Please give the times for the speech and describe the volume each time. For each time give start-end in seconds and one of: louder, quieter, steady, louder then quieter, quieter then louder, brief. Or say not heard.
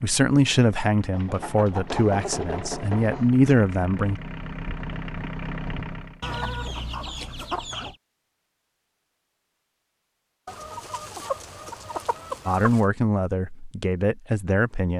0.0-4.2 quieter then louder
12.4-14.9 brief.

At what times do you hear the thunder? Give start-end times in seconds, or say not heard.
not heard.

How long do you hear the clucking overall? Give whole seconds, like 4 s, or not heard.
6 s.